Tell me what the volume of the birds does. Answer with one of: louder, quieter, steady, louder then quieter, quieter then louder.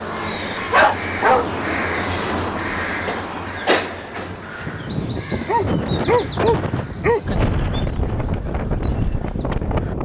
quieter.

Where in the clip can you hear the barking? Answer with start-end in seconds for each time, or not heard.
0.7-1.4, 5.5-7.2.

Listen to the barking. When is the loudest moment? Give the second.
1 s.